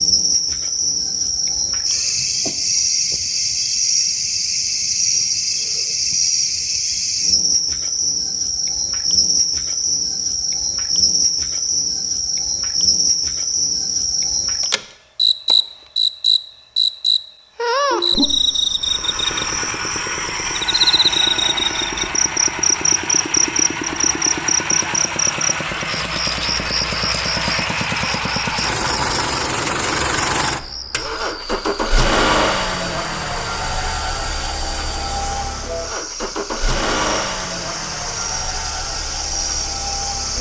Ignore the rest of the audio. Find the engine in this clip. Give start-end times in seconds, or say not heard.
18.8-40.3.